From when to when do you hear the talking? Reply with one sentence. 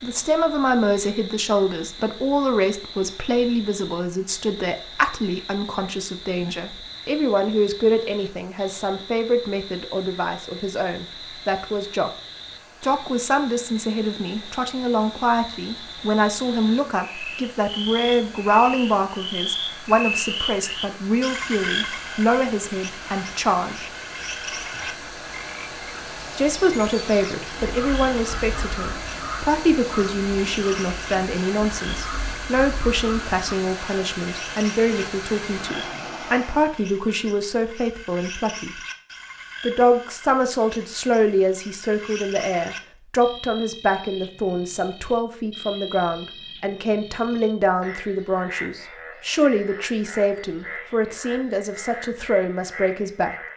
You can hear the talking from 0.0 to 12.1 s, from 12.8 to 23.9 s, from 26.4 to 38.8 s and from 39.6 to 53.4 s.